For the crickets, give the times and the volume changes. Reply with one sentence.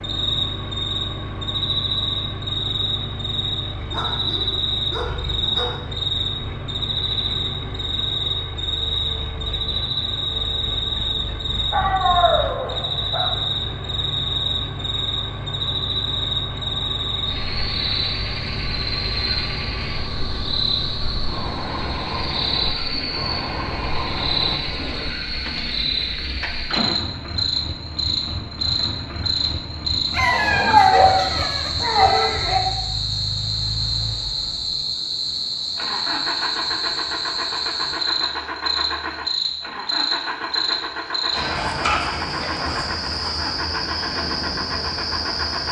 The crickets can be heard from 0.0 to 45.6 s, at a steady volume.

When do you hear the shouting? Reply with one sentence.
The shouting can be heard from 31.9 to 32.4 s.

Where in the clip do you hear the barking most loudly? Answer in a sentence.
The loudest moment of the barking is at 31 seconds.